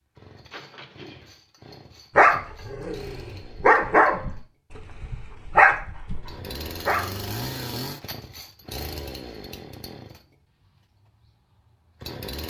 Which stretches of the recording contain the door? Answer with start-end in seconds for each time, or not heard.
0.5-1.4.